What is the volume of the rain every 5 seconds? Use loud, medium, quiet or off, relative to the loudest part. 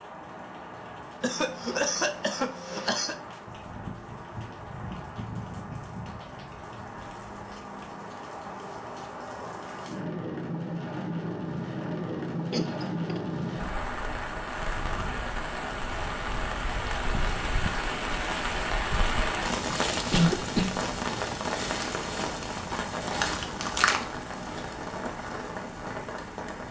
medium, medium, loud, loud, loud, medium.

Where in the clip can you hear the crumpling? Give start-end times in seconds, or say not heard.
23.2-24.2.